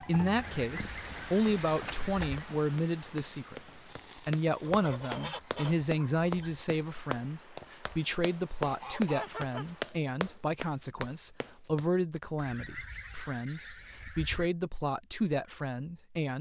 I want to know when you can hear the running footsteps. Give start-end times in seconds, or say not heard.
2.4-12.2.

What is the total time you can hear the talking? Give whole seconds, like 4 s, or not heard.
16 s.